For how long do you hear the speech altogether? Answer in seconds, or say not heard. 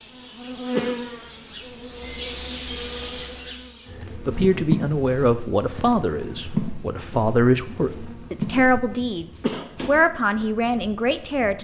7 s.